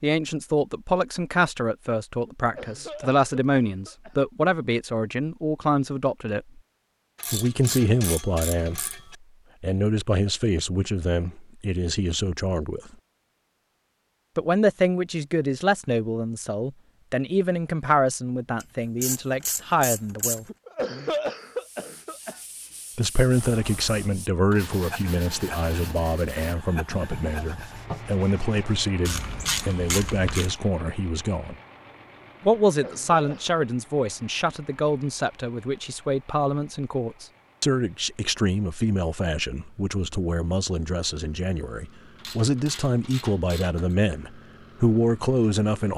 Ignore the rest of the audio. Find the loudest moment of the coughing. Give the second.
21 s.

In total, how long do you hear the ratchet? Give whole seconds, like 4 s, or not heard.
7 s.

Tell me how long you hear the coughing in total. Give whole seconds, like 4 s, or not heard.
5 s.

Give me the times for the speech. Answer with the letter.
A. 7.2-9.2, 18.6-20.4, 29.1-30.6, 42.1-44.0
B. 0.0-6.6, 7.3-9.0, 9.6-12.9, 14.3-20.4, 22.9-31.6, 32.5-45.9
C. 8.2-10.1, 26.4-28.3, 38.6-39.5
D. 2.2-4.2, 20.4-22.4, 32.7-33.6
B.